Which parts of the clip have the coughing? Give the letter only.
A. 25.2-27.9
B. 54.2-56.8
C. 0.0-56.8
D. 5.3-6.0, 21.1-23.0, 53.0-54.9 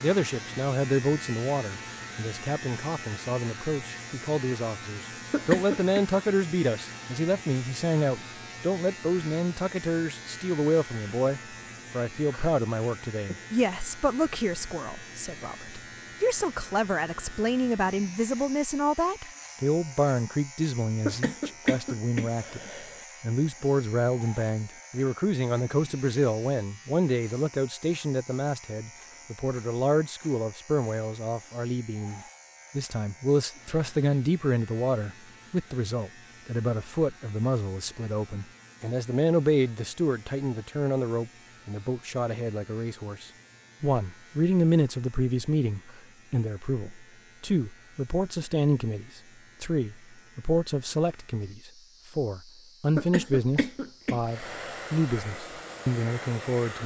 D.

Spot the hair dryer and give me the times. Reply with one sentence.
The hair dryer can be heard from 54.2 to 56.8 s.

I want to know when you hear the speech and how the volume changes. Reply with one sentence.
The speech can be heard from 0.0 to 56.8 s, at a steady volume.